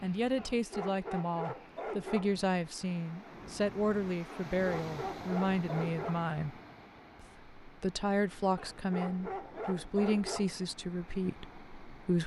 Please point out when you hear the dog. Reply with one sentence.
You can hear the dog from 0.3 to 2.5 s, from 4.2 to 6.2 s and from 8.6 to 10.7 s.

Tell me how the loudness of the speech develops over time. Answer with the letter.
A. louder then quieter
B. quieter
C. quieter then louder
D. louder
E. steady
E.